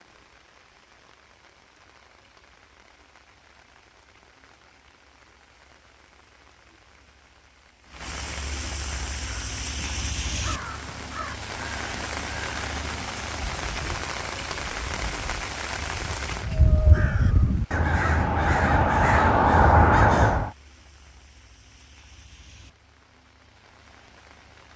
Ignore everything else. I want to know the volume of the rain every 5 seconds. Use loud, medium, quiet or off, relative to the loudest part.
quiet, medium, loud, loud, quiet.